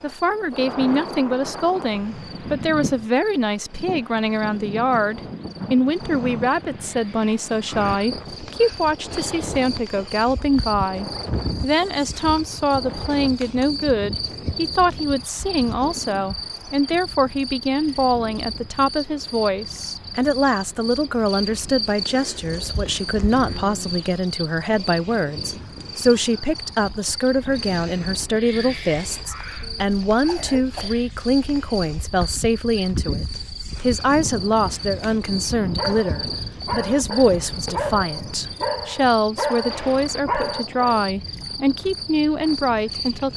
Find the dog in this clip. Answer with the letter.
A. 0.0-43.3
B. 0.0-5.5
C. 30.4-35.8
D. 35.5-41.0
D.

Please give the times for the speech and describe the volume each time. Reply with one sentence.
You can hear the speech from 0.0 to 43.3 s, at a steady volume.